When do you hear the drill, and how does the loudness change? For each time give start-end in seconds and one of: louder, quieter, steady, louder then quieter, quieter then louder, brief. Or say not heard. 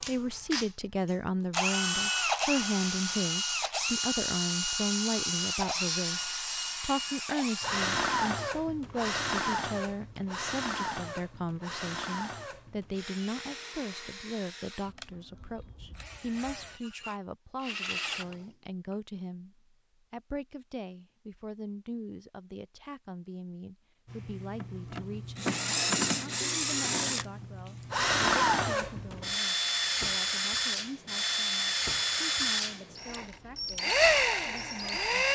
0.0-18.9 quieter
24.1-35.3 steady.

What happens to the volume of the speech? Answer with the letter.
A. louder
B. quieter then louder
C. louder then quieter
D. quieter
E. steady
D.